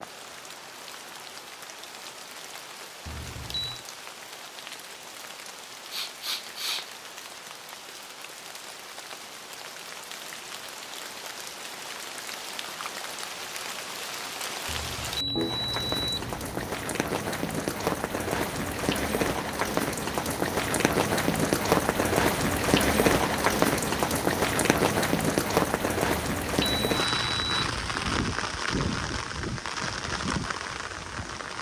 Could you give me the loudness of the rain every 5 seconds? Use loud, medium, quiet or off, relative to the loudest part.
quiet, quiet, quiet, medium, loud, loud, medium.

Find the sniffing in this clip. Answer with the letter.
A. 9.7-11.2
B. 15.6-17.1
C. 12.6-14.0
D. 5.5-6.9
D.